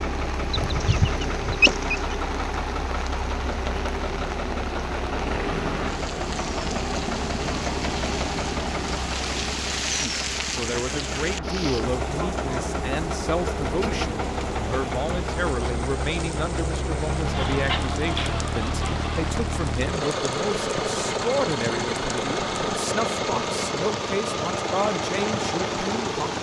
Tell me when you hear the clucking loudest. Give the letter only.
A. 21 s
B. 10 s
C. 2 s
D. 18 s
C.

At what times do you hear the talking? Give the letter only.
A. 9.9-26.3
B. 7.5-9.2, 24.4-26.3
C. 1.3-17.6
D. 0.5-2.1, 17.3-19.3
A.